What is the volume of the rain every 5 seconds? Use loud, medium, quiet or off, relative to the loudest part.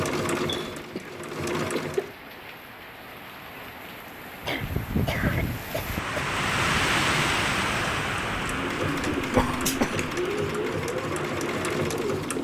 medium, loud, medium.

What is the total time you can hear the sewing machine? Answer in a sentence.
The sewing machine can be heard for 6 seconds in total.